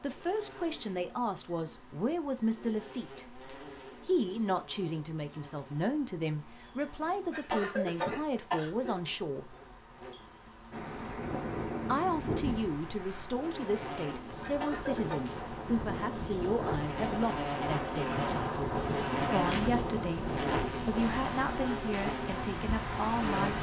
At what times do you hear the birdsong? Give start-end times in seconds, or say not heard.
not heard.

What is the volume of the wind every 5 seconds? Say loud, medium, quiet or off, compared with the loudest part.
off, off, loud, loud, loud.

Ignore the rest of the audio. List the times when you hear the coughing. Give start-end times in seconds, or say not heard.
7.3-8.9, 14.4-15.2.